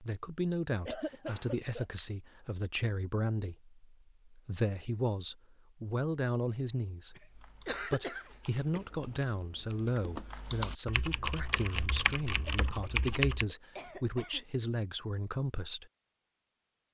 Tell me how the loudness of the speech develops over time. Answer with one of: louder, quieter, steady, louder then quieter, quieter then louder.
steady.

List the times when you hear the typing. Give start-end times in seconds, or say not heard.
7.2-13.4.